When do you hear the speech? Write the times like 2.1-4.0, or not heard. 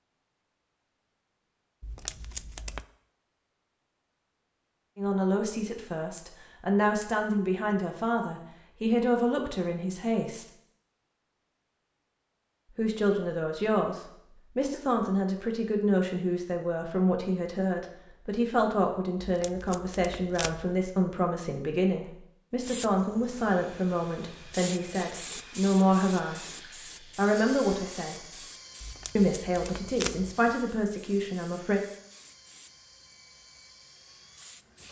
5.0-10.4, 12.8-28.2, 29.1-31.8.